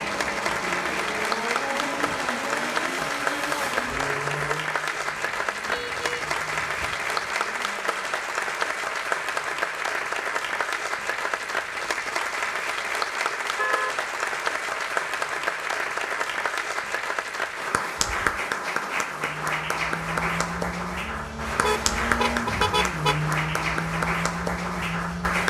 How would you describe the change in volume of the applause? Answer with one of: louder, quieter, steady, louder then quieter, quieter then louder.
steady.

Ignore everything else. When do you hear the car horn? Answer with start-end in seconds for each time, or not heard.
5.7-7.0, 13.6-14.0, 21.6-23.1.